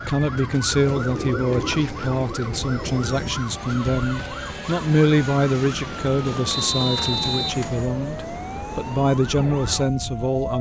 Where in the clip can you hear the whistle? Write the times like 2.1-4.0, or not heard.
6.5-7.6.